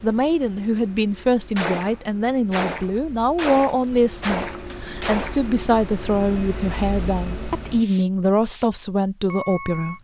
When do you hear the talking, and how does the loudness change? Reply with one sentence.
You can hear the talking from 0.0 to 9.9 s, at a steady volume.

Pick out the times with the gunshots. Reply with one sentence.
You can hear the gunshots from 1.6 to 5.5 s.